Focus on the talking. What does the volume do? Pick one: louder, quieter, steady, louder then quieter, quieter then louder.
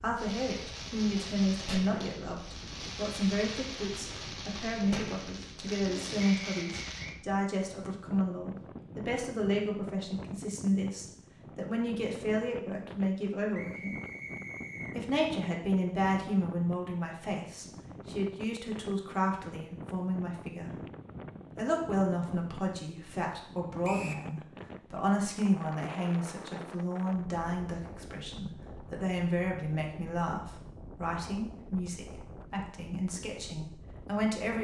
steady.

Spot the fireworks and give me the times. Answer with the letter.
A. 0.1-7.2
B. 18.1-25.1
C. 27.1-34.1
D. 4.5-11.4
A.